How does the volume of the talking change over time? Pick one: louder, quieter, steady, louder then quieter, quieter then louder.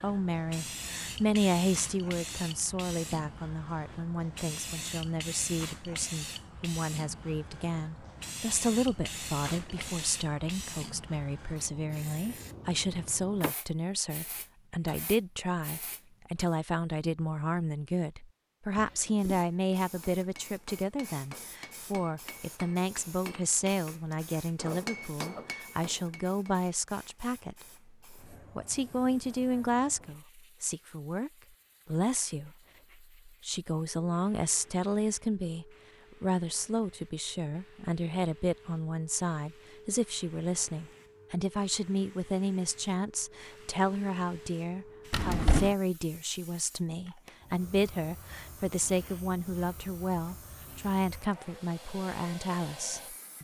steady.